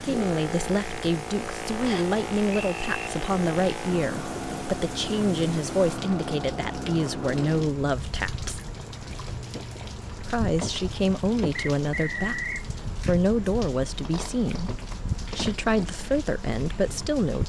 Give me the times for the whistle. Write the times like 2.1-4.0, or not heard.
1.9-3.0, 11.6-12.7.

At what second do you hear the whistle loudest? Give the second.
12 s.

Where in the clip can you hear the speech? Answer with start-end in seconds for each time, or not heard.
0.0-8.6, 10.2-17.4.